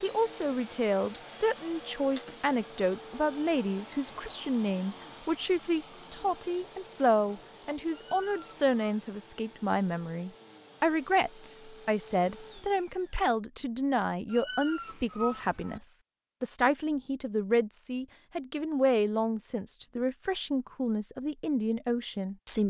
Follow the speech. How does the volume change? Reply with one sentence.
The volume of the speech stays about the same.